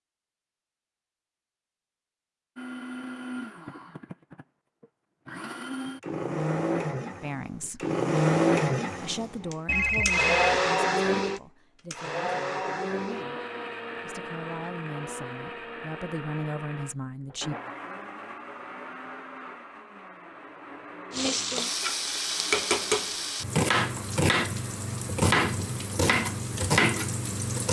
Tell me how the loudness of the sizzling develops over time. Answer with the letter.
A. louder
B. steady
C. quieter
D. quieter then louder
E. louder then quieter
B.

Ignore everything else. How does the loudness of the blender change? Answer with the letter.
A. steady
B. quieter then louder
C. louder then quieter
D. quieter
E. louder
C.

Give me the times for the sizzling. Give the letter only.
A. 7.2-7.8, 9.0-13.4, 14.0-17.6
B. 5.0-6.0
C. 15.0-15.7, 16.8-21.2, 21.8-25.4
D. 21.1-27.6
D.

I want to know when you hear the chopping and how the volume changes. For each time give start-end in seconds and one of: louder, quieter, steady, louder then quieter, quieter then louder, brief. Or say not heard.
not heard.